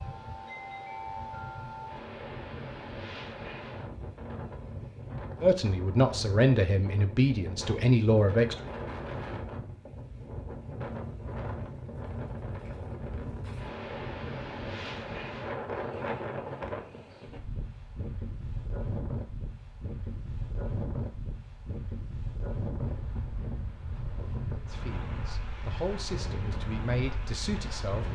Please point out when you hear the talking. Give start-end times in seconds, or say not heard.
5.4-8.6, 24.6-28.1.